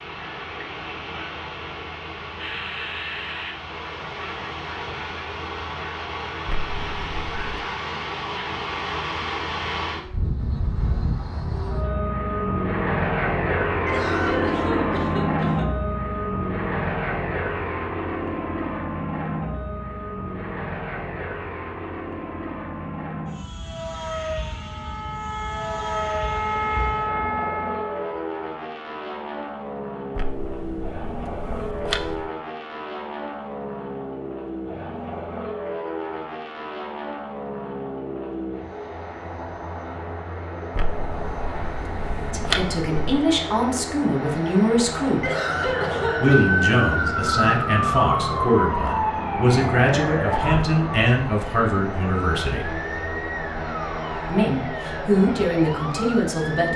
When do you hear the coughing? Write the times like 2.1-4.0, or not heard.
13.8-15.7, 45.2-46.5.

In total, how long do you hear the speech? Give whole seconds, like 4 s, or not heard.
12 s.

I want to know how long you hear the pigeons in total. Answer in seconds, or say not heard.
not heard.